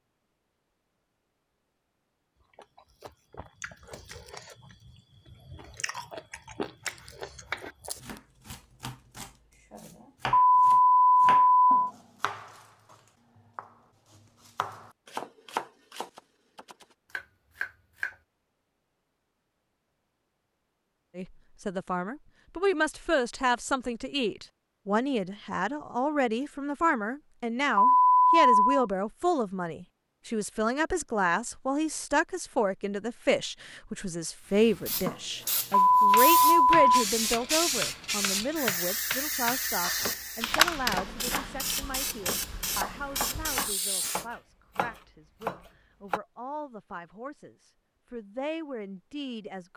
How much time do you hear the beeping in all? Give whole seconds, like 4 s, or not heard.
4 s.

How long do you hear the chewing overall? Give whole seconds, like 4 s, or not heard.
6 s.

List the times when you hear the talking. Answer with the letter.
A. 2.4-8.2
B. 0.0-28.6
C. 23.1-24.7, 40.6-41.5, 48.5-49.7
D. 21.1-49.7
D.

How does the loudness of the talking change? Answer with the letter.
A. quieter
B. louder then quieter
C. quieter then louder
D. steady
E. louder
A.